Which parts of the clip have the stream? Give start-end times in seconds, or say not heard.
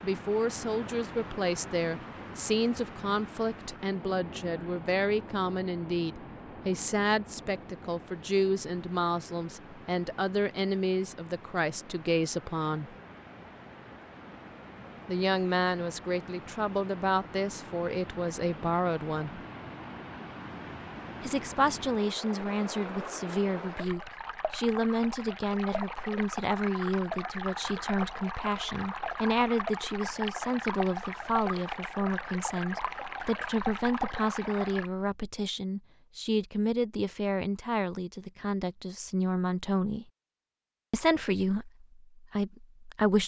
0.0-34.9.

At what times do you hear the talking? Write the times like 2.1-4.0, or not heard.
0.0-12.9, 15.1-19.4, 21.2-40.0, 40.9-43.2.